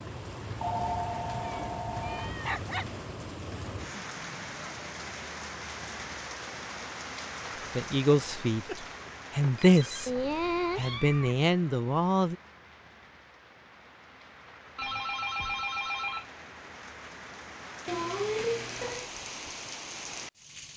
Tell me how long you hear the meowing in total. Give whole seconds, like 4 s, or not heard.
4 s.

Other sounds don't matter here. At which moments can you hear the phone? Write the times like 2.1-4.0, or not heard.
0.6-2.4, 8.7-10.3, 14.8-16.2.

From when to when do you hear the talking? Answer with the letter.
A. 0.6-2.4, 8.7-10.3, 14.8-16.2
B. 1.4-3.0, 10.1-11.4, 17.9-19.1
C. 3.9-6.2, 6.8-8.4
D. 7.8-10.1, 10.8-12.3
D.